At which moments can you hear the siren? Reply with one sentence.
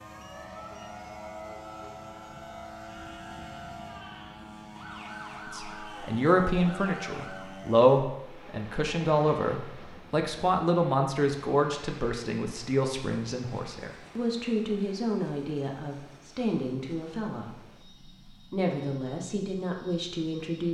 You can hear the siren from 0.0 to 7.5 s.